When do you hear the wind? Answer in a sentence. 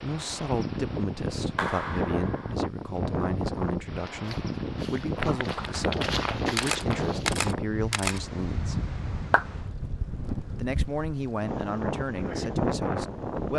You can hear the wind from 0.0 to 13.5 s.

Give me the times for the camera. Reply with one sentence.
The camera can be heard from 6.5 to 8.2 s.